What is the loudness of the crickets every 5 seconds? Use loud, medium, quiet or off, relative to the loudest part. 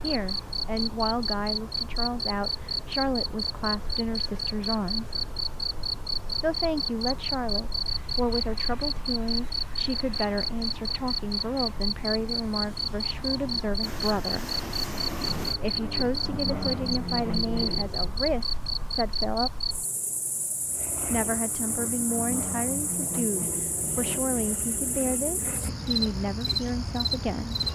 loud, loud, loud, loud, medium, loud.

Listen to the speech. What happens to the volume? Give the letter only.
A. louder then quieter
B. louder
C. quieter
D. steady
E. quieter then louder
D.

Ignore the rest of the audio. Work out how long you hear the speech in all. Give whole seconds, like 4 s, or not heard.
24 s.